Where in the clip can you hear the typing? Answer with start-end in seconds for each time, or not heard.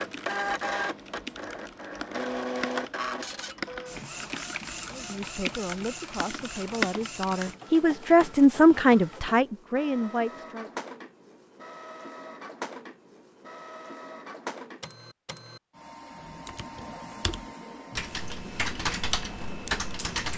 0.0-7.5, 16.2-20.3.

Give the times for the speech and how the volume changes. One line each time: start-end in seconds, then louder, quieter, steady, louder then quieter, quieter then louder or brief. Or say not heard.
4.9-10.7 louder then quieter.